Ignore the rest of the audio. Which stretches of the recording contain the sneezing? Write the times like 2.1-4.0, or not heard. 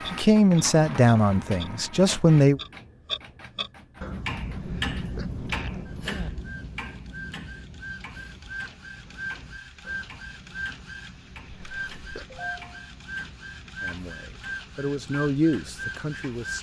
4.5-6.3, 11.5-12.4.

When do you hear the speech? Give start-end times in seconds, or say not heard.
0.1-2.6, 13.8-16.5.